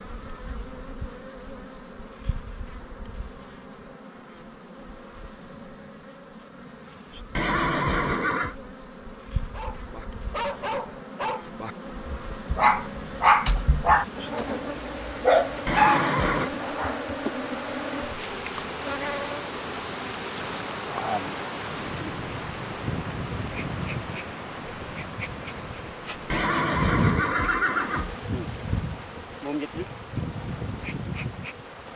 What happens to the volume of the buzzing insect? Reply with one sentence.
The loudness of the buzzing insect goes up.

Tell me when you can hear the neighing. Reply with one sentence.
You can hear the neighing from 7.3 to 8.6 s, from 15.7 to 16.5 s and from 26.3 to 28.1 s.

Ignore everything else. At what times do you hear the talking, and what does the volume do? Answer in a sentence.
The talking can't be heard in this clip.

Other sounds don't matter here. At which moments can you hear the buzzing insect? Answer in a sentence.
The buzzing insect can be heard from 0.0 to 31.9 s.